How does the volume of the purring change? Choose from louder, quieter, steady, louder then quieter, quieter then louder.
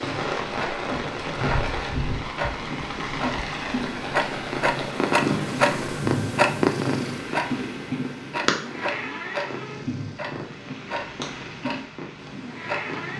louder then quieter.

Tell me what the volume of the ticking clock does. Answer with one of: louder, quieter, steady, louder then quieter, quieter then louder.
louder then quieter.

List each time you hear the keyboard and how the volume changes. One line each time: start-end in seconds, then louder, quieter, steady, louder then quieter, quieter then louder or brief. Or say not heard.
not heard.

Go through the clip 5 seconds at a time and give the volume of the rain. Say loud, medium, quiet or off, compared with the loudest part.
loud, medium, medium.